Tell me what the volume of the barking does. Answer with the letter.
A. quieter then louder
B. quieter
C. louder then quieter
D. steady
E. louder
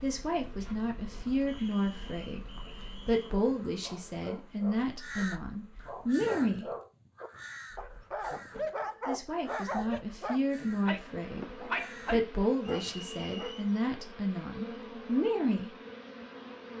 E.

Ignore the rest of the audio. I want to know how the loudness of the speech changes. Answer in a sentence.
The volume of the speech stays about the same.